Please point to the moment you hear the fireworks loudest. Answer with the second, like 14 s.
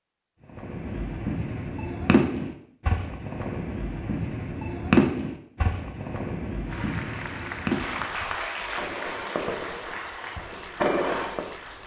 5 s.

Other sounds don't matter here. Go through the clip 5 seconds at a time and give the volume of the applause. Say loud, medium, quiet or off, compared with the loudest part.
off, loud, medium.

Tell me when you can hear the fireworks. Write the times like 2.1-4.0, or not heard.
0.6-11.6.